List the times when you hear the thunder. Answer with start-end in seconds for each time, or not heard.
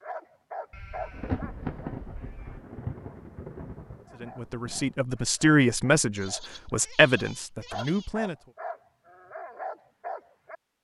1.1-5.0.